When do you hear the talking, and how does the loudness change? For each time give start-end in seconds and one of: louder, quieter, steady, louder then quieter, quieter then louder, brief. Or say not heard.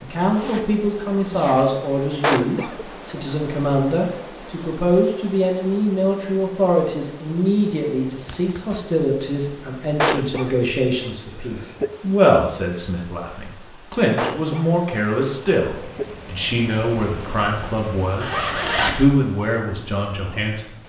0.0-20.6 steady.